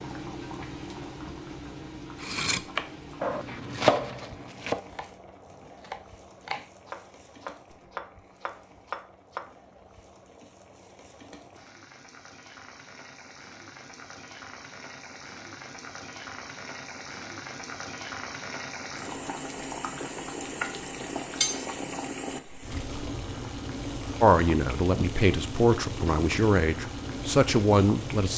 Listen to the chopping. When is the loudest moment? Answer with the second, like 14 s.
4 s.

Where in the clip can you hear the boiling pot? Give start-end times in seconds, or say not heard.
0.0-28.3.